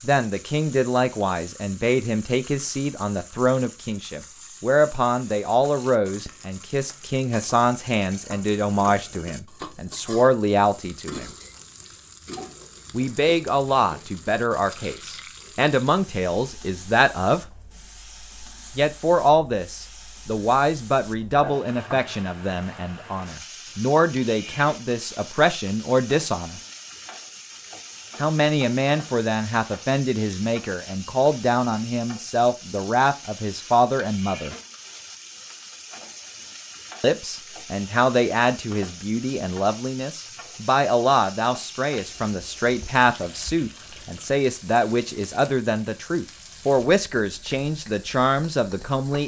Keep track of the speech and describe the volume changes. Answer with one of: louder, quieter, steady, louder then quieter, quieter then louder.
steady.